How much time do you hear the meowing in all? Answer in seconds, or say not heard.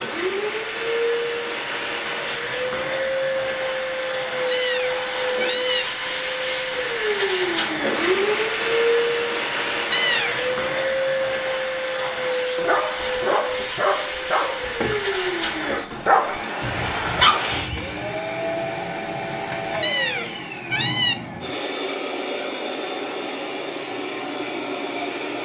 3 s.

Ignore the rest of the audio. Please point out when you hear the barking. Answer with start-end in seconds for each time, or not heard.
11.9-18.1.